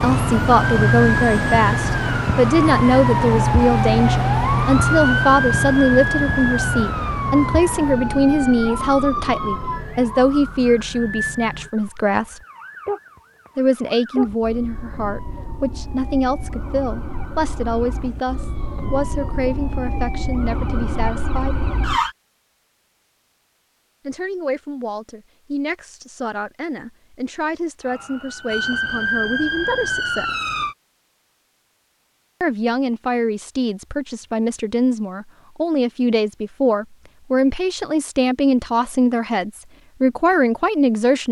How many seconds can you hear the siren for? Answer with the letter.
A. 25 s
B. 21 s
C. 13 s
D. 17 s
A.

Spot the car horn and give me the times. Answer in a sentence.
You can't hear the car horn here.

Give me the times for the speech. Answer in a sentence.
You can hear the speech from 0.0 to 12.4 s, from 13.6 to 21.6 s, from 24.1 to 30.2 s and from 32.4 to 41.2 s.